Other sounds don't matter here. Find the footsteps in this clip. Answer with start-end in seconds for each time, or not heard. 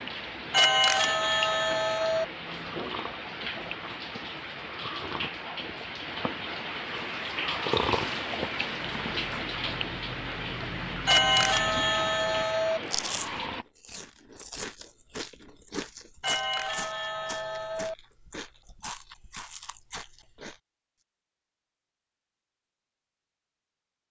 not heard.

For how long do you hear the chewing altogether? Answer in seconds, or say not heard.
12 s.